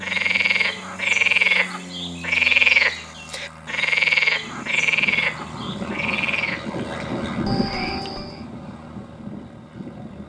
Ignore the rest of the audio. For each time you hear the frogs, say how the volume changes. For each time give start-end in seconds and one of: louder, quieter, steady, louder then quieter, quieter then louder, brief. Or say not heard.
0.0-8.4 quieter.